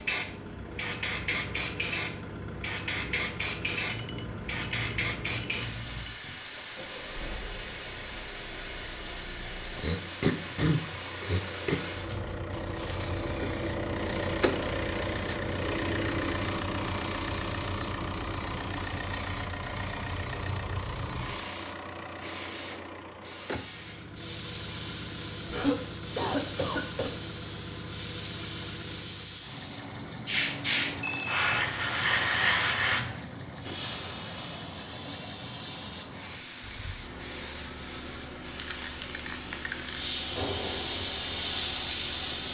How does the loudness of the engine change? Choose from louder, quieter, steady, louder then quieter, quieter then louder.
louder then quieter.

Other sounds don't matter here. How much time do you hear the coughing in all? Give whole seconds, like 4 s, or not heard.
4 s.